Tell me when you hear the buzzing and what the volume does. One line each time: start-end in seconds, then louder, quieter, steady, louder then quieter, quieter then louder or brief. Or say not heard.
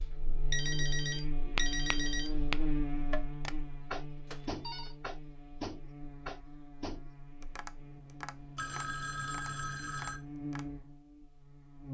0.0-11.9 quieter then louder.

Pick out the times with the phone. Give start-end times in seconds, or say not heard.
0.5-2.3, 4.2-5.0, 8.6-10.2.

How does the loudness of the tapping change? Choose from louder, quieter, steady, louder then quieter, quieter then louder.
quieter.